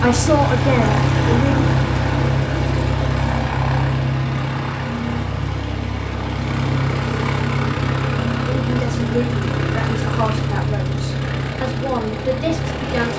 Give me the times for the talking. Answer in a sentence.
You can hear the talking from 0.0 to 1.6 s and from 8.5 to 13.1 s.